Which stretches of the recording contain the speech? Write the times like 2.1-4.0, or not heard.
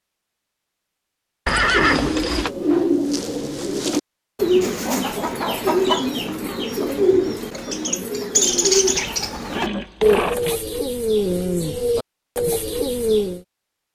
not heard.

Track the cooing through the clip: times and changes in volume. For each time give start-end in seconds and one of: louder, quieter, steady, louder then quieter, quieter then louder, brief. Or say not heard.
1.6-13.4 steady.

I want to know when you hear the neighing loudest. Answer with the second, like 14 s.
2 s.